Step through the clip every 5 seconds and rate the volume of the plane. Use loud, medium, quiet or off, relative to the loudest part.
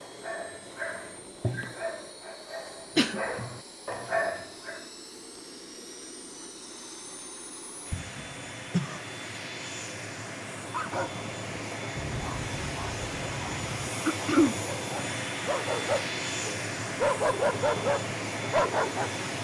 quiet, medium, loud, loud.